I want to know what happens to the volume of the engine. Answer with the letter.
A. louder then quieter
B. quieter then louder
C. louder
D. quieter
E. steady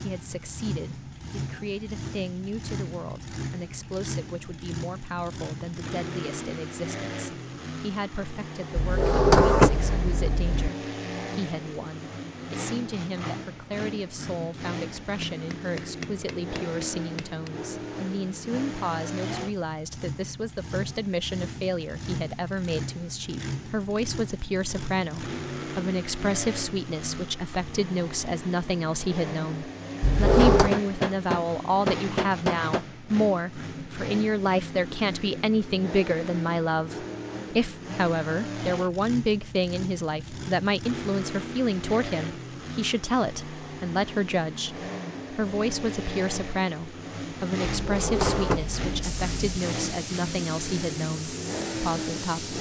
E.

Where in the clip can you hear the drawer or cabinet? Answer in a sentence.
You can hear the drawer or cabinet from 8.8 to 10.7 s, from 30.0 to 30.7 s and from 47.8 to 49.4 s.